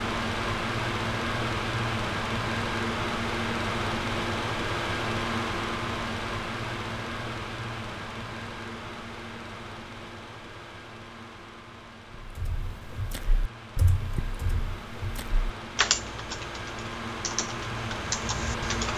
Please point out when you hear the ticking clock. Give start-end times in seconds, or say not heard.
not heard.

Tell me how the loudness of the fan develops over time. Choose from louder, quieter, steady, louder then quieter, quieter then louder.
quieter then louder.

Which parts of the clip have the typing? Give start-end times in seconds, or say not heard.
12.2-18.9.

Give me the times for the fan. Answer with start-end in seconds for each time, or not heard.
0.0-18.9.